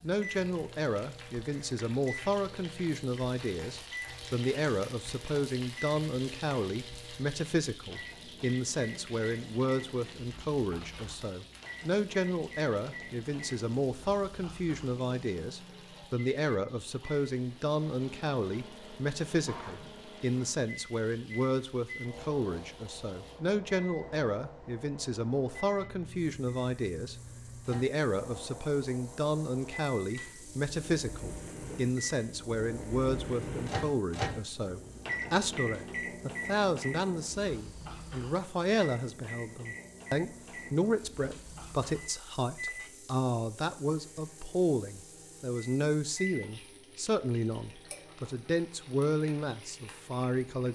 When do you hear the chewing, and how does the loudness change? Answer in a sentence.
The chewing can't be heard in this clip.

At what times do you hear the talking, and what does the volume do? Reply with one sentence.
The talking can be heard from 0.0 to 50.7 s, at a steady volume.